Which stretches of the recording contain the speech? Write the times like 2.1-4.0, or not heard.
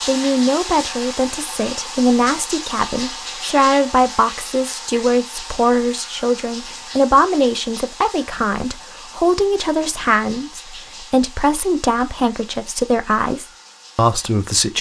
0.1-14.7.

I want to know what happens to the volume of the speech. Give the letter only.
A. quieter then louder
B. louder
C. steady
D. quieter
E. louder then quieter
C.